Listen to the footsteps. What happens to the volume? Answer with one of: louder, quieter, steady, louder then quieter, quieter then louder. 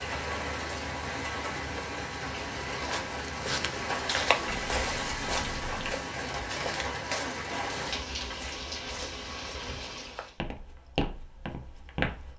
quieter then louder.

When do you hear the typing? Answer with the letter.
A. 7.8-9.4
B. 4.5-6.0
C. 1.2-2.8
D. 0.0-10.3
B.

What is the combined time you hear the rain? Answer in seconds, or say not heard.
10 s.